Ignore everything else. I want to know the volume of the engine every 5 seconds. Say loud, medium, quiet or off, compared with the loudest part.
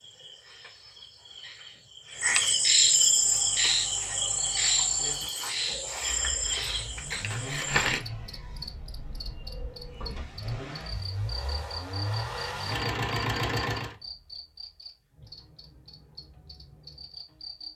quiet, medium, loud, off.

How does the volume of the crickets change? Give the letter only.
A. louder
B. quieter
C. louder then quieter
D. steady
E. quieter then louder
B.